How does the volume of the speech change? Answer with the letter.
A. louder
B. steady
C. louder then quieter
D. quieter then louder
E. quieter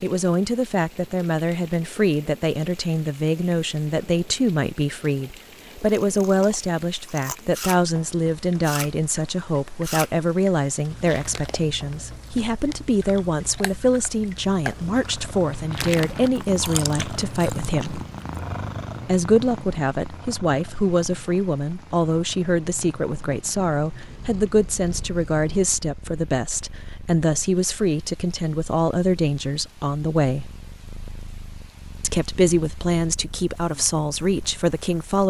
B.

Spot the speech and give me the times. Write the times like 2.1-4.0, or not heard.
0.0-18.0, 19.1-30.5, 32.0-35.2.